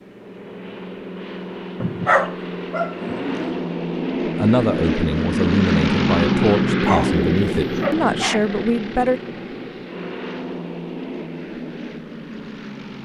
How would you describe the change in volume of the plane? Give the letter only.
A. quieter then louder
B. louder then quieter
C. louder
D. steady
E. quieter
B.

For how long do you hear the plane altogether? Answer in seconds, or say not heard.
13 s.